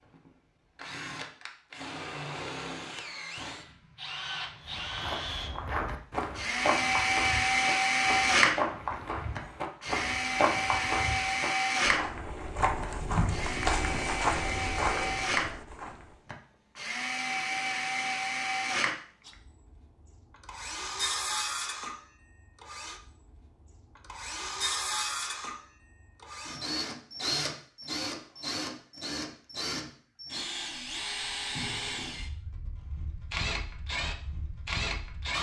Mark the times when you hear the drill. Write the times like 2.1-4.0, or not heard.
0.1-35.3.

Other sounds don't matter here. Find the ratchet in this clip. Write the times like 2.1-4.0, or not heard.
not heard.